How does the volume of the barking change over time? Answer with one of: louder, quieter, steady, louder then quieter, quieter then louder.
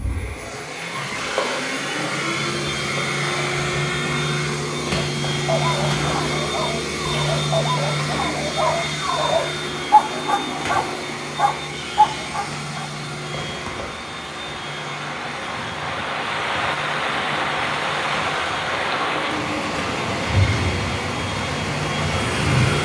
louder.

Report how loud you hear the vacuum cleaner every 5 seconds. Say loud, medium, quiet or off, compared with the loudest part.
loud, loud, medium, medium, loud.